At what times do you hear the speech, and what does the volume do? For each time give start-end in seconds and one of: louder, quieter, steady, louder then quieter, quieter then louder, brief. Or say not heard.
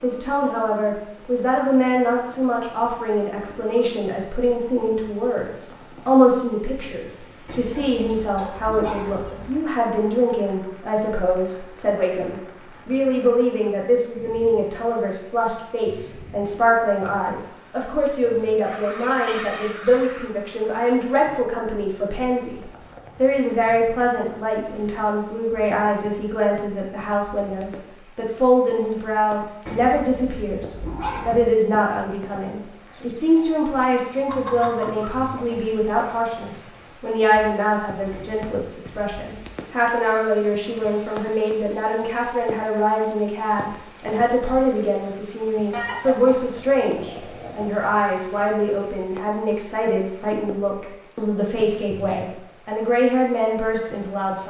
0.0-54.4 steady.